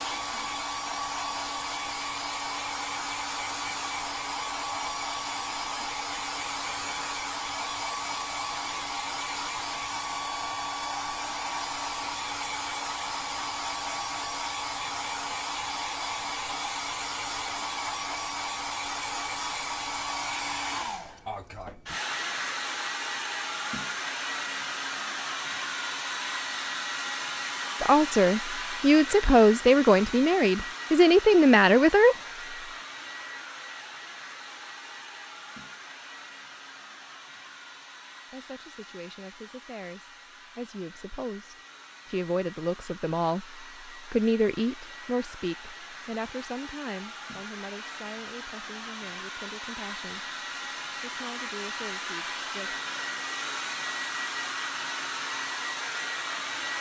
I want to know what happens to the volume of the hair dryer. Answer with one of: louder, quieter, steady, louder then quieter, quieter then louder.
quieter then louder.